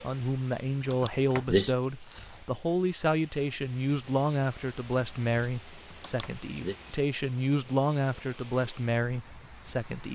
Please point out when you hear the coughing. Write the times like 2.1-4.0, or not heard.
0.9-1.8, 6.0-6.8.